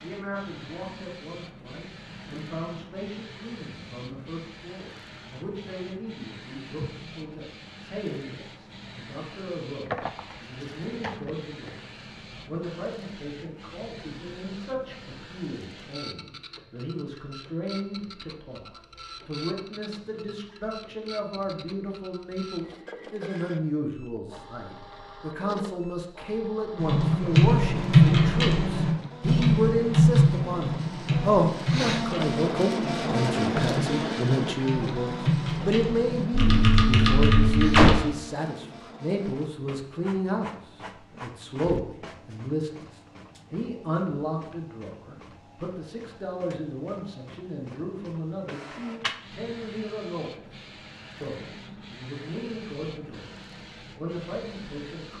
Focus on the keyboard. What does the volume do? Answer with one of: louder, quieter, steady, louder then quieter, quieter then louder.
quieter then louder.